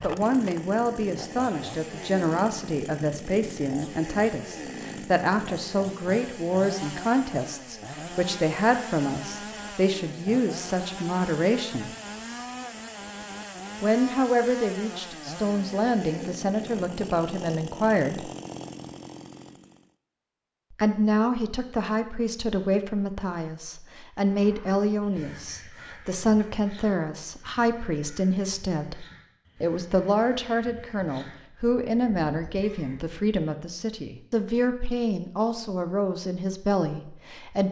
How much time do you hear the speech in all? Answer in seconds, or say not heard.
33 s.